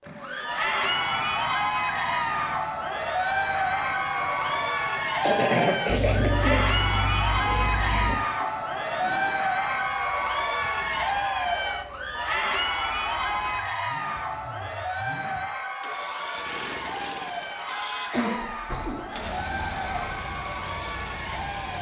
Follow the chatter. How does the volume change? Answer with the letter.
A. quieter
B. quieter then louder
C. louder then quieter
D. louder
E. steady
A.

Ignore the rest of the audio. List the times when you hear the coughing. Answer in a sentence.
The coughing can be heard from 5.0 to 6.7 s and from 17.9 to 19.8 s.